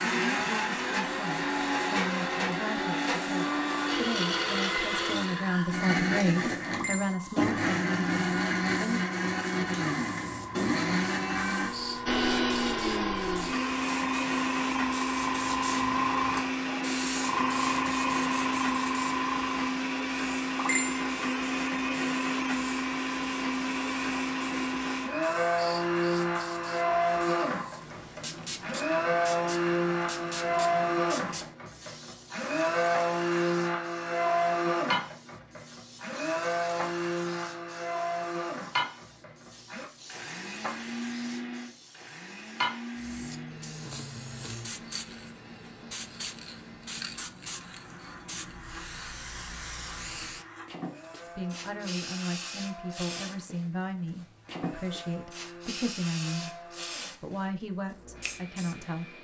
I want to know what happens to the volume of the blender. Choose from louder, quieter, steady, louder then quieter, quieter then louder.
quieter.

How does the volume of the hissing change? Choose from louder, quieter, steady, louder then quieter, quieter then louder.
louder then quieter.